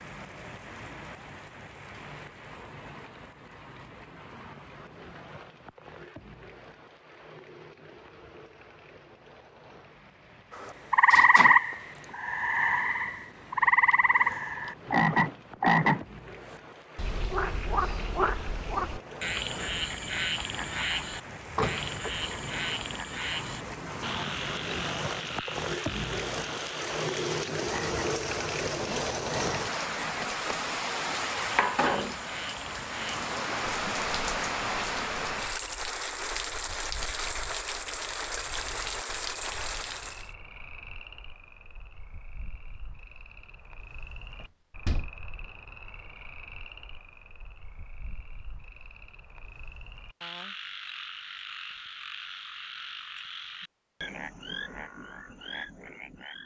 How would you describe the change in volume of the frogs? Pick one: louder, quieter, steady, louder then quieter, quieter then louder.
quieter then louder.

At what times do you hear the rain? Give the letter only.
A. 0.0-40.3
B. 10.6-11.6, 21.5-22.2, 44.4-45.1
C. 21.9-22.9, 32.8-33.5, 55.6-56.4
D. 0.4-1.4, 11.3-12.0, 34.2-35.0
A.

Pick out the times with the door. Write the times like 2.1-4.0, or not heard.
10.6-11.6, 21.5-22.2, 44.4-45.1.